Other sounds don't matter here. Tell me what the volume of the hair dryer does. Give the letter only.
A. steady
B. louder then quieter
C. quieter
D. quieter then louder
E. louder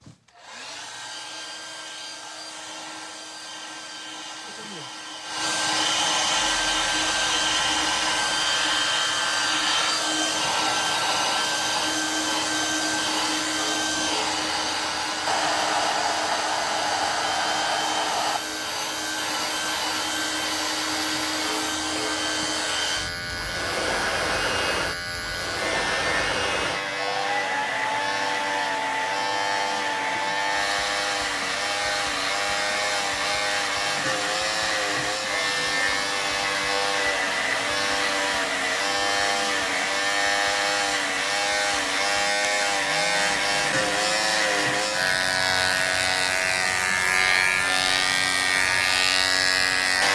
C.